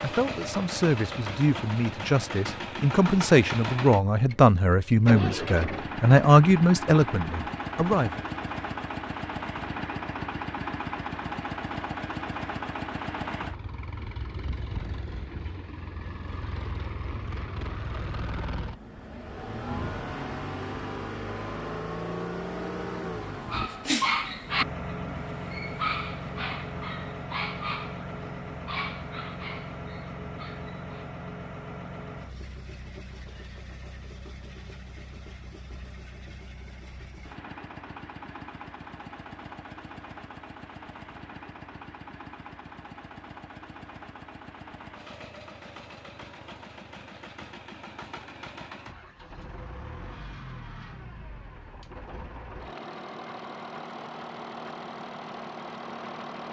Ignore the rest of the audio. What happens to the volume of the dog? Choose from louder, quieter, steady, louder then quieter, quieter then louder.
quieter.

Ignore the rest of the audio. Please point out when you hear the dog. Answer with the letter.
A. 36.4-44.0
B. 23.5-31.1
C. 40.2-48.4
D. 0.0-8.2
B.